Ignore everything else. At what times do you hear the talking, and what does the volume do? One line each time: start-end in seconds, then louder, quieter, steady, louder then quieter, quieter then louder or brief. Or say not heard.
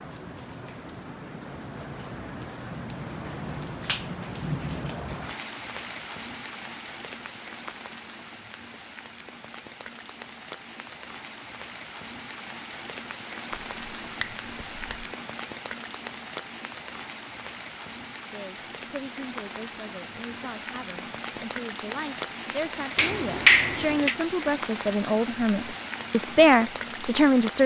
18.3-27.6 louder.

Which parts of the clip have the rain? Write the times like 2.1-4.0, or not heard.
0.0-27.6.